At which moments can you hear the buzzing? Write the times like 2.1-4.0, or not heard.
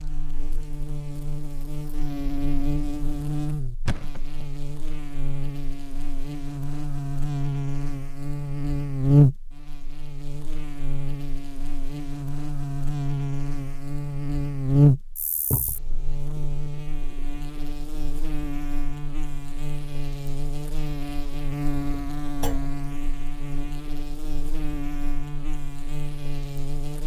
0.0-27.0.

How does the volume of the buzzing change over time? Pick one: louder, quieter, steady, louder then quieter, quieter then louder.
louder then quieter.